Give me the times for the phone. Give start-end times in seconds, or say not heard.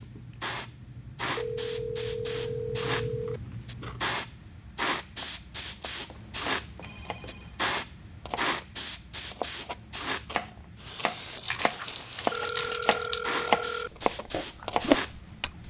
1.4-3.4, 6.1-7.6, 12.3-13.9.